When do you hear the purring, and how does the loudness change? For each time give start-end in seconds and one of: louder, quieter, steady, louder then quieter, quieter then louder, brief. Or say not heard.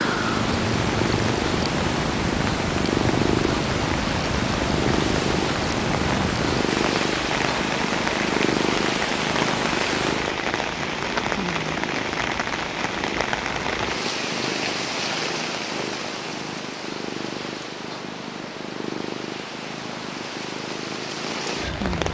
0.0-22.0 quieter.